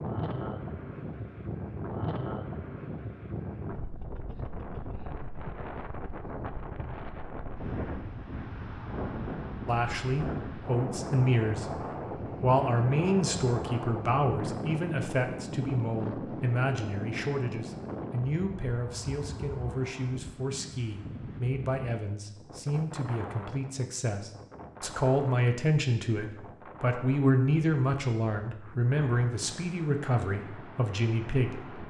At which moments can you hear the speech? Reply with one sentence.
You can hear the speech from 9.7 to 31.8 s.